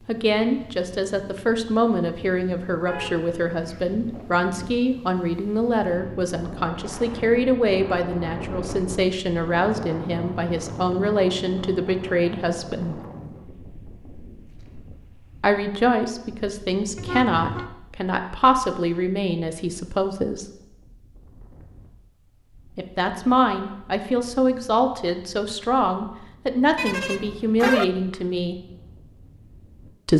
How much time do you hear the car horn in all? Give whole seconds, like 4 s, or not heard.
3 s.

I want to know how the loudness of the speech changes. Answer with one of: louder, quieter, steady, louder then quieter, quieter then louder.
steady.